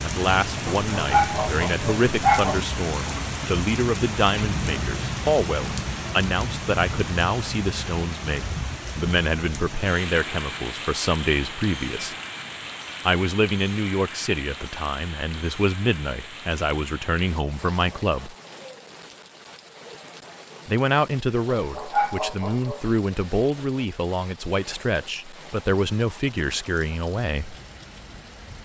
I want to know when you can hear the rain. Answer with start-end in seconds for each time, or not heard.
0.0-28.6.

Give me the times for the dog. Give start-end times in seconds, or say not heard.
0.7-2.6, 21.6-23.0.